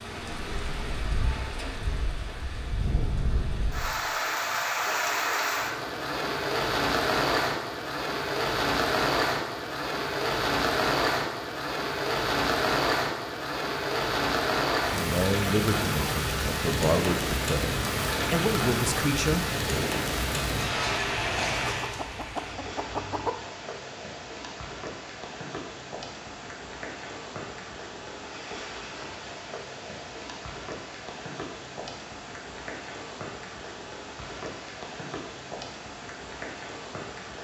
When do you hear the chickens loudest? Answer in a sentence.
The volume of the chickens peaks at 23 seconds.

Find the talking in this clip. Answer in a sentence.
The talking can be heard from 14.9 to 19.5 s.